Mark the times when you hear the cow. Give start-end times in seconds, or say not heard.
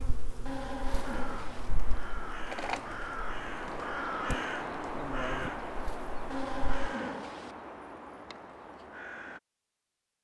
0.5-1.7, 6.3-7.5.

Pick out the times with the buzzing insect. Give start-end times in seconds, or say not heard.
0.0-6.9.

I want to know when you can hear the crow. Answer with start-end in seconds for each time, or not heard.
0.8-9.4.